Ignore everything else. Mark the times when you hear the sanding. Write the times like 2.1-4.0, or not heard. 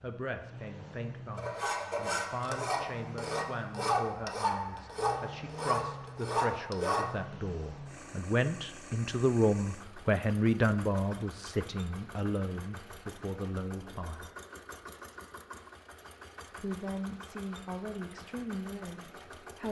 1.4-7.2.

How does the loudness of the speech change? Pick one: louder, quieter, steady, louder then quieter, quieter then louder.
louder then quieter.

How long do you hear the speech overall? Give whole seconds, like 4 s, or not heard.
17 s.